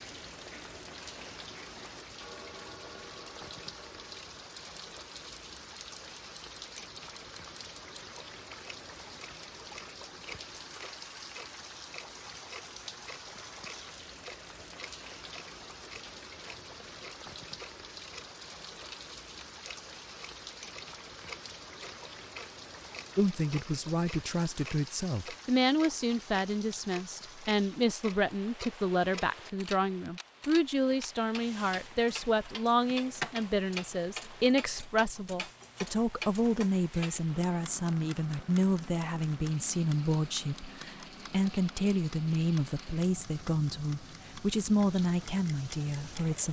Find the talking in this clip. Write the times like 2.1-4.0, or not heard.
23.1-46.4.